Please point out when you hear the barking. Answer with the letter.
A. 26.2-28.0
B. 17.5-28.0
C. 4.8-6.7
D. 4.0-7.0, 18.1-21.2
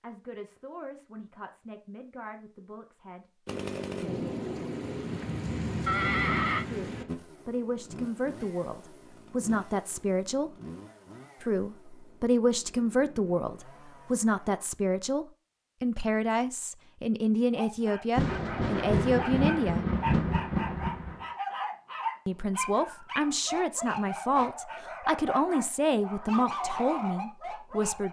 B.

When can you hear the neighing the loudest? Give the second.
6 s.